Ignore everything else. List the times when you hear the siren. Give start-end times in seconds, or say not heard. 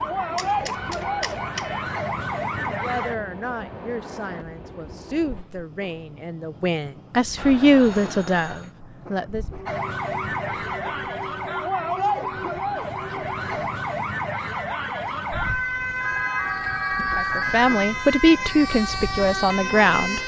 0.0-3.1, 9.7-20.2.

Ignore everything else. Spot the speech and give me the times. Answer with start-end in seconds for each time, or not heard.
2.7-9.4, 17.1-20.2.